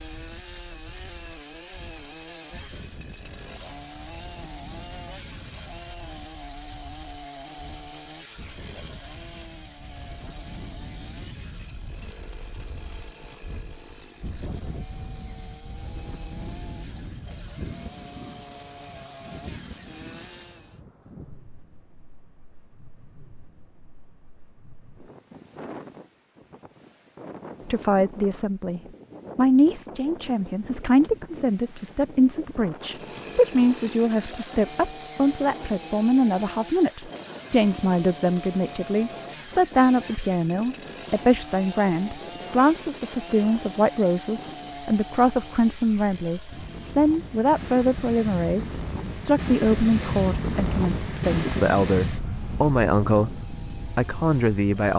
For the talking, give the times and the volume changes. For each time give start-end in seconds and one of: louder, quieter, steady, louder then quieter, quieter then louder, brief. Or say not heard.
27.6-54.9 steady.